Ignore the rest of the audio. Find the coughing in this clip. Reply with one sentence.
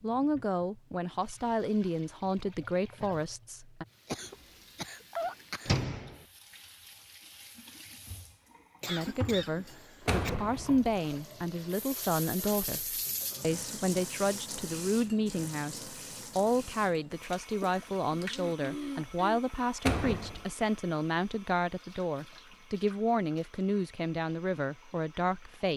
The coughing can be heard from 4.0 to 5.7 s, from 8.8 to 10.3 s and from 18.1 to 19.4 s.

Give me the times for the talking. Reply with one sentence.
You can hear the talking from 0.0 to 3.9 s and from 8.8 to 25.7 s.